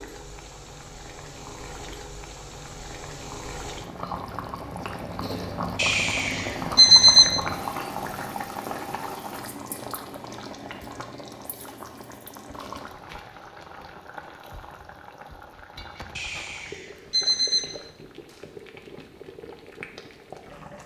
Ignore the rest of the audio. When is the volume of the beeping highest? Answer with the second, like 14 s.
7 s.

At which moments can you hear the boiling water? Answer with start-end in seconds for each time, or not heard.
0.0-20.8.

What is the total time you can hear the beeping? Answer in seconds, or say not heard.
3 s.